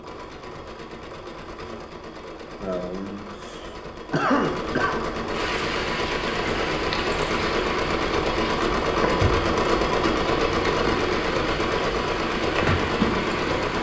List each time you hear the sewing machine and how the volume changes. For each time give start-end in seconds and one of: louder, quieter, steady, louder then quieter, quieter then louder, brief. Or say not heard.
0.0-13.7 louder.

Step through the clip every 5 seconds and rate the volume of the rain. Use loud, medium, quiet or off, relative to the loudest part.
off, loud, loud.